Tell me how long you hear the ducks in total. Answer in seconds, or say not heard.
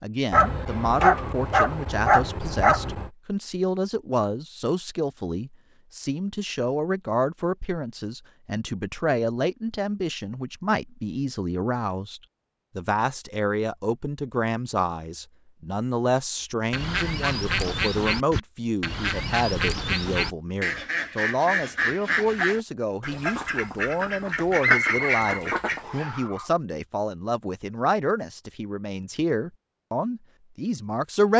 9 s.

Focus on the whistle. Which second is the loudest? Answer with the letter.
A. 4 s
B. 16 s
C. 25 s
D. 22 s
C.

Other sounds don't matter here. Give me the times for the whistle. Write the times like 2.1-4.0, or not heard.
24.6-26.2.